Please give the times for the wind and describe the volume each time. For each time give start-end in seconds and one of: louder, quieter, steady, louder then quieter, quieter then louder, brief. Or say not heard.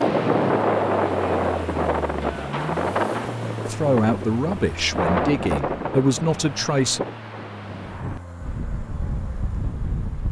0.0-10.2 quieter.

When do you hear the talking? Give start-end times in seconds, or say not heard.
3.6-7.0.